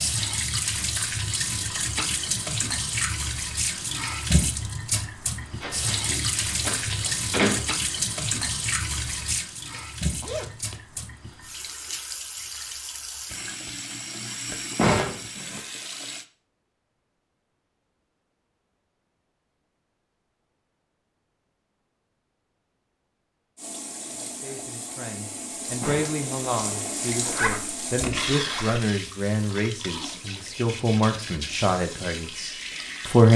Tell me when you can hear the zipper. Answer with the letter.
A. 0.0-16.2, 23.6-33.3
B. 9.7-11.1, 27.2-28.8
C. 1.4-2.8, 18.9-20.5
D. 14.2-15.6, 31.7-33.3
B.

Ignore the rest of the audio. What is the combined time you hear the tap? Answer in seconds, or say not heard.
26 s.